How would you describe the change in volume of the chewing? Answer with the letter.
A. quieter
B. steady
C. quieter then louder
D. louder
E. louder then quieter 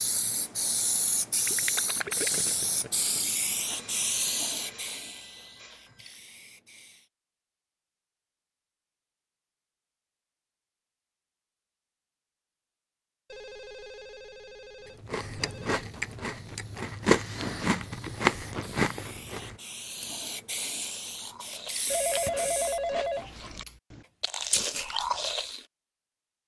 C.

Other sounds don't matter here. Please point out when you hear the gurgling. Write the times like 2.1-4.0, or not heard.
1.4-3.5.